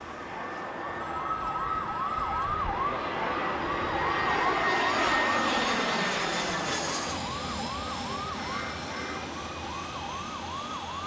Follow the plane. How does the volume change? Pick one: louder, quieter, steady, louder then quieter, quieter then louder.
louder then quieter.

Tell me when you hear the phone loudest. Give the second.
2 s.